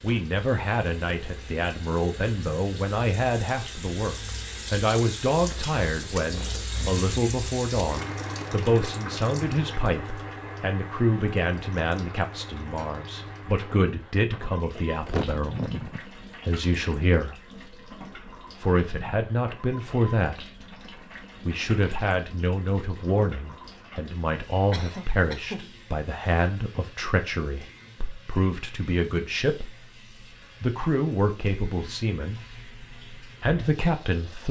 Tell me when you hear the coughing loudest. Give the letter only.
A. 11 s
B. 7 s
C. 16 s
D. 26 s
C.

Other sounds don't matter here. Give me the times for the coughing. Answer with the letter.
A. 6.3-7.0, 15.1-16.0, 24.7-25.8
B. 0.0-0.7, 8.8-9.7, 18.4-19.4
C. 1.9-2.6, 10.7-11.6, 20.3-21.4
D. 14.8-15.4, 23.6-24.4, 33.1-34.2
A.